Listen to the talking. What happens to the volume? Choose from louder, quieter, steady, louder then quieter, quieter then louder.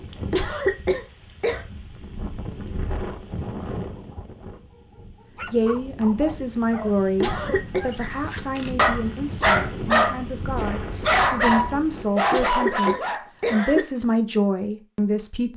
quieter then louder.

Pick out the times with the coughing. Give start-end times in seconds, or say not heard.
0.3-1.6, 7.2-7.8, 12.3-13.8.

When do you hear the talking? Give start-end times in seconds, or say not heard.
5.5-15.5.